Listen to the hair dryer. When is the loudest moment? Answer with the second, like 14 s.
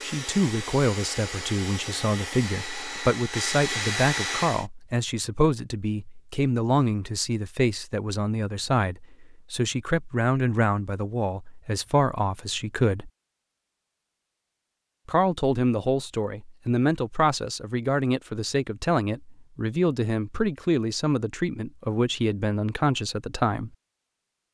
4 s.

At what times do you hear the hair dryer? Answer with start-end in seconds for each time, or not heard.
0.0-4.7.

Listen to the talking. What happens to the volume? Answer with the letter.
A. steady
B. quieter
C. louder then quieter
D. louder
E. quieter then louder
A.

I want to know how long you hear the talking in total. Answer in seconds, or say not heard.
22 s.